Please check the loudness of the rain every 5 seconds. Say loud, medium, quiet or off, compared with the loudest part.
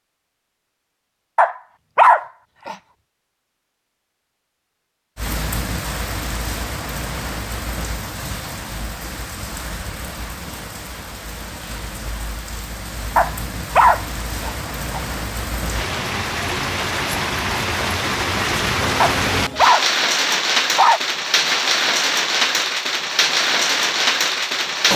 off, medium, quiet, loud, loud.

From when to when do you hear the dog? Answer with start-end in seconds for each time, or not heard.
1.4-2.8, 13.2-15.0, 19.0-21.0.